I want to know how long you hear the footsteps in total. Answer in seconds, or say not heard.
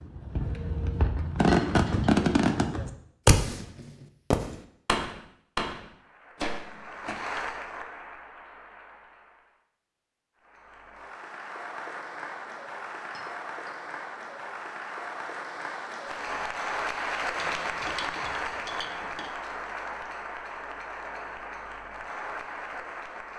not heard.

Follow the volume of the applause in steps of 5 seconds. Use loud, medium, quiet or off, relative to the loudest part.
off, medium, medium, loud, medium.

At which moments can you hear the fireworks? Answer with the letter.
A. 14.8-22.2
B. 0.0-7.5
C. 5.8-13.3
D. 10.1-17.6
B.